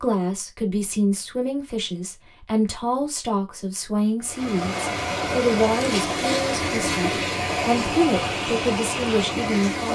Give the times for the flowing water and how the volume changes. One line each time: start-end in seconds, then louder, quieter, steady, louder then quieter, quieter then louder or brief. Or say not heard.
4.2-9.9 steady.